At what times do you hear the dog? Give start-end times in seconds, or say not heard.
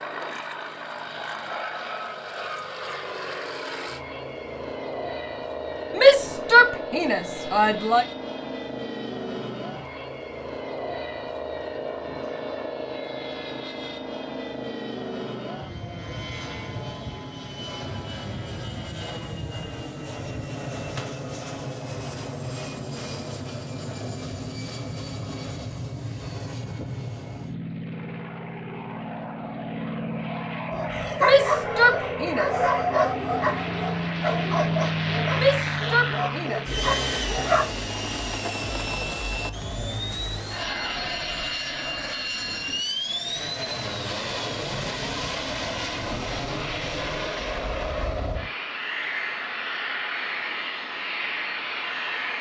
30.7-37.6.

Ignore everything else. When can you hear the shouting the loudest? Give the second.
6 s.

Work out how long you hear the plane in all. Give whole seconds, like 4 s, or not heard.
52 s.